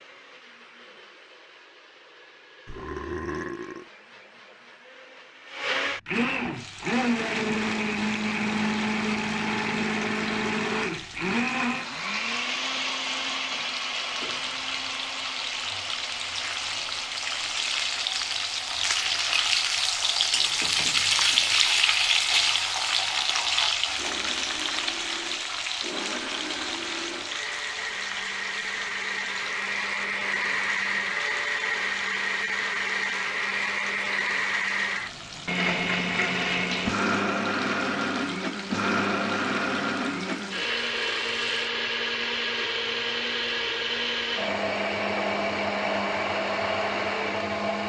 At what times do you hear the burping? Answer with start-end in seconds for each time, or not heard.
2.6-3.9.